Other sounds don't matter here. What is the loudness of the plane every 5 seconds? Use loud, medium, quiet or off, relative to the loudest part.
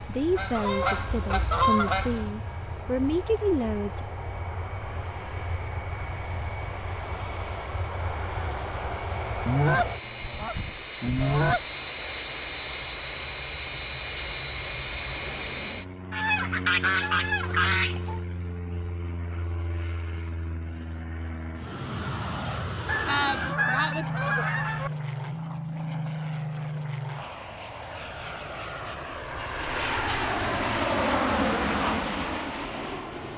quiet, medium, medium, medium, medium, medium, loud.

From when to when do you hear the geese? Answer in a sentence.
The geese can be heard from 0.3 to 2.3 s, from 9.4 to 11.7 s, from 16.1 to 18.2 s, from 22.9 to 24.9 s and from 29.3 to 30.6 s.